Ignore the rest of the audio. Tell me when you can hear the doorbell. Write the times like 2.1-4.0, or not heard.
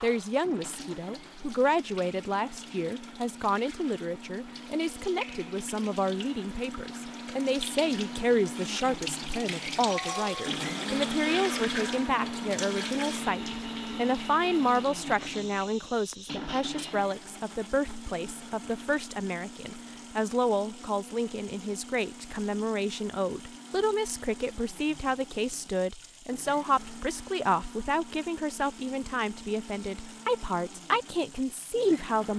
9.9-10.6.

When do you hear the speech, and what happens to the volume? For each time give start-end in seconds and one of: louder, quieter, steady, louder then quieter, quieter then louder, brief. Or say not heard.
0.0-32.3 steady.